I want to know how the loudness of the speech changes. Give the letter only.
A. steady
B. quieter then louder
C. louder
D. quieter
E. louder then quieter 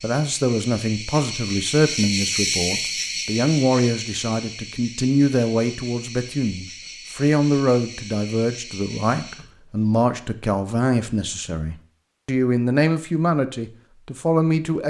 A.